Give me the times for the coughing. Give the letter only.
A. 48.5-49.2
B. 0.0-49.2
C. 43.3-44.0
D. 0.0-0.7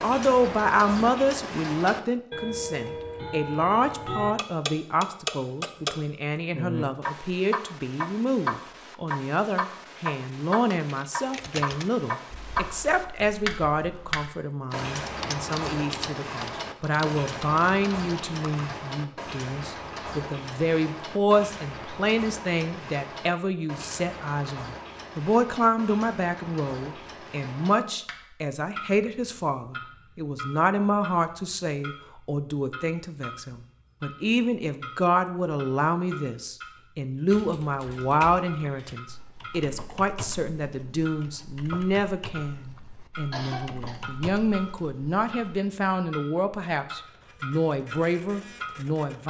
C.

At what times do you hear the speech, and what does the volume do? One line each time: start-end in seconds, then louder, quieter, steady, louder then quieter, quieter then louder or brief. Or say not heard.
0.0-49.2 steady.